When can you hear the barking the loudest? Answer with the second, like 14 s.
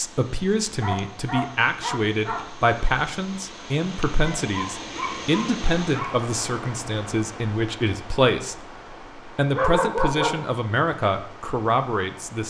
10 s.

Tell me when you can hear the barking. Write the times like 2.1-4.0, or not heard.
0.8-2.5, 4.2-6.2, 9.5-10.6.